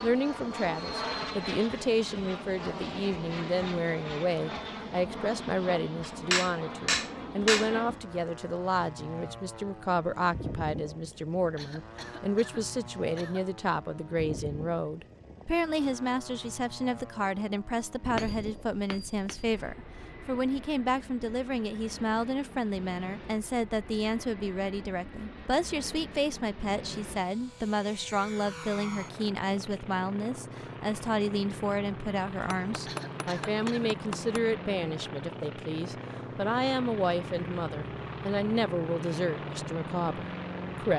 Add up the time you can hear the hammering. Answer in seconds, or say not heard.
5 s.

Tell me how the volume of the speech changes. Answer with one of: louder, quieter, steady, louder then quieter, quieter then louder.
steady.